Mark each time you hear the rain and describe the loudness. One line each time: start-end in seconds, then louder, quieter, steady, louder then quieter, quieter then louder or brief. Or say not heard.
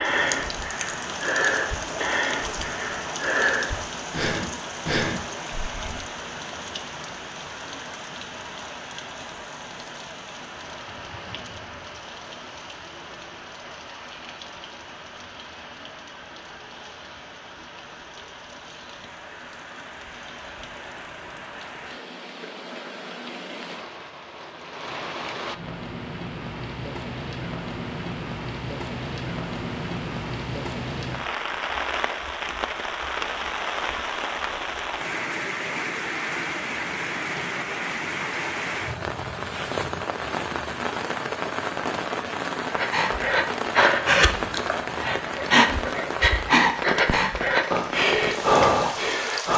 0.0-49.5 quieter then louder.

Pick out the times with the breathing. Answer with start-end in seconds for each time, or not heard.
0.0-6.0, 42.7-49.5.